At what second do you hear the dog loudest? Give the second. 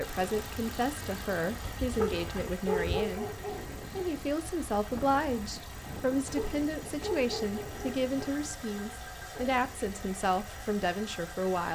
3 s.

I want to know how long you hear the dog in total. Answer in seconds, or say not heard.
4 s.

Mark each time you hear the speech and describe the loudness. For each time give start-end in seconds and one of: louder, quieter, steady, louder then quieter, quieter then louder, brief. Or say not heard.
0.0-11.7 steady.